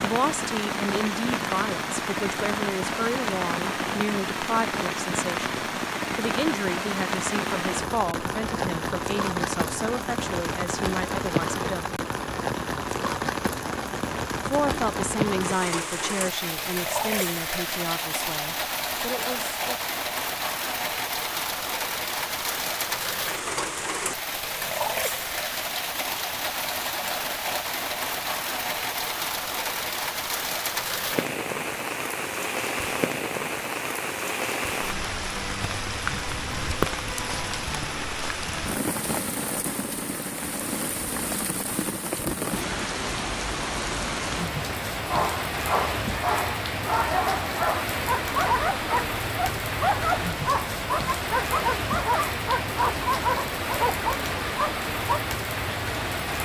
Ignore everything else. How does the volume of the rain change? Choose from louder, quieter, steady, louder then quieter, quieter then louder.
steady.